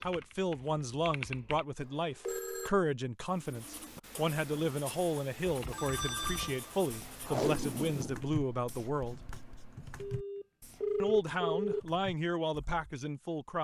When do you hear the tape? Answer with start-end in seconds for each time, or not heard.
7.2-8.7.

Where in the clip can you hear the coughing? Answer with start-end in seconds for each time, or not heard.
not heard.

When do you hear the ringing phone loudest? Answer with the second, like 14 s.
11 s.